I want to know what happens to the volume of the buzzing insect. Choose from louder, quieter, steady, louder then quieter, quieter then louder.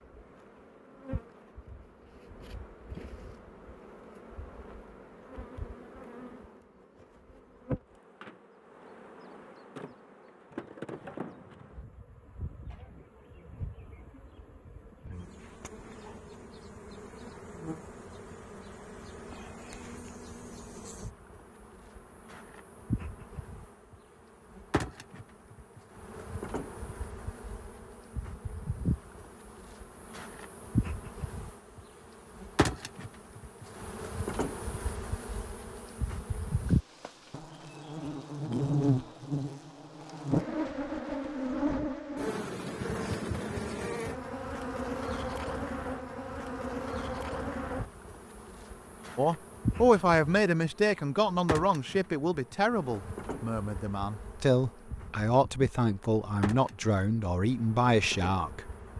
louder then quieter.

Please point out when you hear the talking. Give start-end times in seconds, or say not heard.
49.1-58.7.